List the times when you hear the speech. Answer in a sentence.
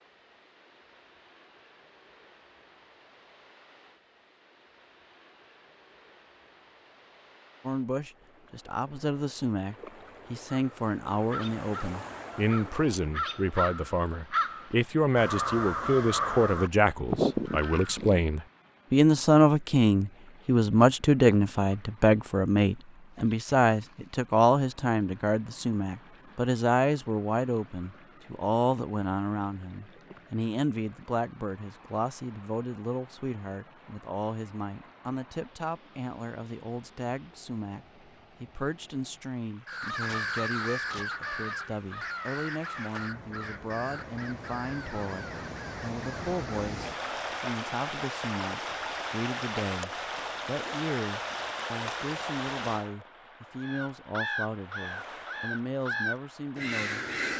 You can hear the speech from 7.7 to 57.1 s.